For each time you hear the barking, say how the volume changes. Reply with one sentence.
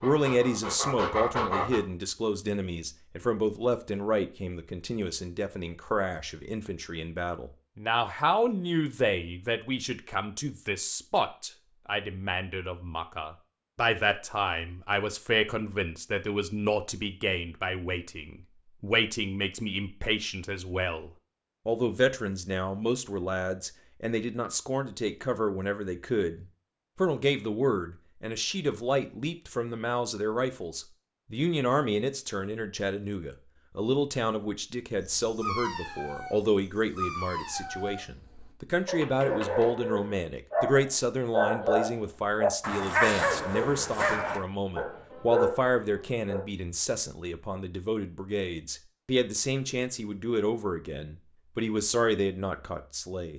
The barking can be heard briefly from 0.0 to 1.8 s; and from 34.9 to 46.5 s, getting louder.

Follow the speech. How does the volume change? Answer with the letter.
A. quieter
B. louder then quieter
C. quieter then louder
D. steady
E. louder
D.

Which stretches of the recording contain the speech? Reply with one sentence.
The speech can be heard from 0.0 to 53.3 s.